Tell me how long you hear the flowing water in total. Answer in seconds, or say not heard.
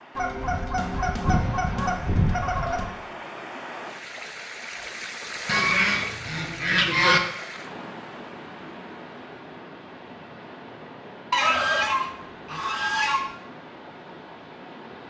15 s.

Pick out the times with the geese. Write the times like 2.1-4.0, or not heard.
0.1-2.9, 5.5-7.2, 11.3-13.2.